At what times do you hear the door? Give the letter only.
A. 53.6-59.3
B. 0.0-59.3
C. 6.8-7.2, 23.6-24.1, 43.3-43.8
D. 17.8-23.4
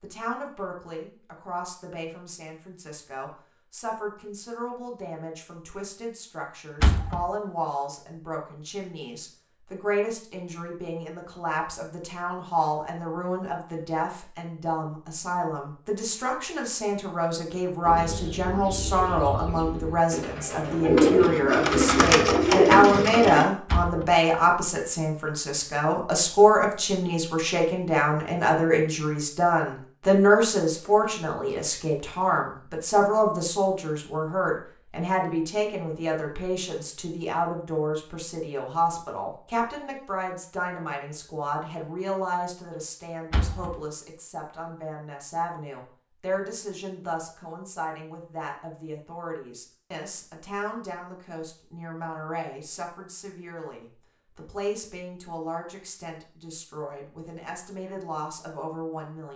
C.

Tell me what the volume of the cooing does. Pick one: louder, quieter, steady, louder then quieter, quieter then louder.
louder.